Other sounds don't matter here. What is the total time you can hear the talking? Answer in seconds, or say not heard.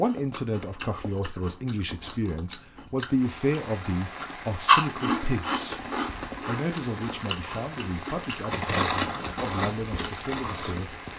11 s.